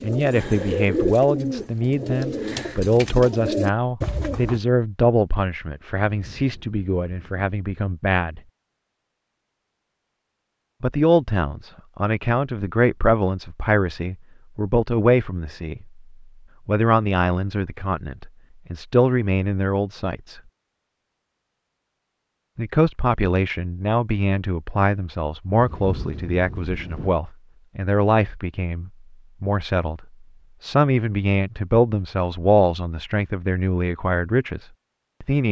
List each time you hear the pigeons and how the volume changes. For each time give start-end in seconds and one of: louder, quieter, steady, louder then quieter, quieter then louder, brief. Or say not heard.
0.0-4.6 quieter then louder.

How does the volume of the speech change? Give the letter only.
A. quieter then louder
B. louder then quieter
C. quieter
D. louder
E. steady
E.